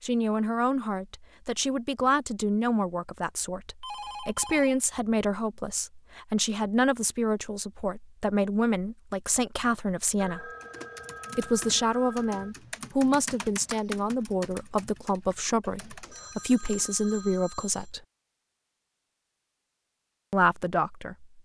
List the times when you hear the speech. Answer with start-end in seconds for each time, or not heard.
0.0-10.5, 11.3-18.0, 20.3-21.2.